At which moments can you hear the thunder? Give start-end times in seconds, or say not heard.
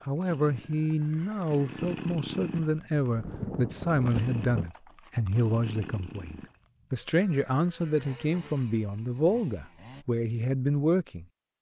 3.1-4.7.